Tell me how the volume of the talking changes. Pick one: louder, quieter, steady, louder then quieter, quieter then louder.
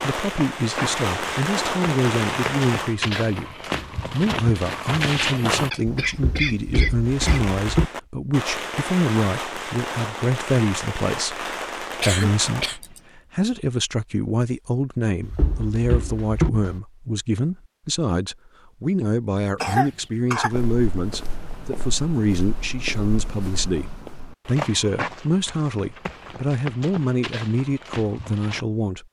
steady.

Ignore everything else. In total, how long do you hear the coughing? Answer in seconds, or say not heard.
4 s.